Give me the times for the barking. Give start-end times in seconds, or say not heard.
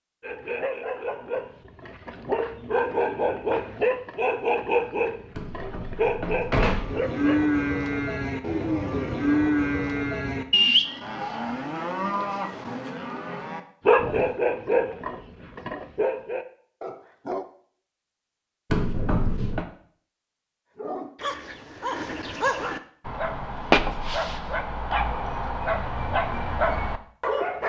0.2-7.4, 13.8-17.4, 20.8-27.6.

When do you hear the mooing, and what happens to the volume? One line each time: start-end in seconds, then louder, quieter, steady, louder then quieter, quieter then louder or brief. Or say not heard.
6.7-14.4 quieter.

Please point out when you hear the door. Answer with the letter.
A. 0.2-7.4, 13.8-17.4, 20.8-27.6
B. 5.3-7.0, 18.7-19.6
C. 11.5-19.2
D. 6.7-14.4
B.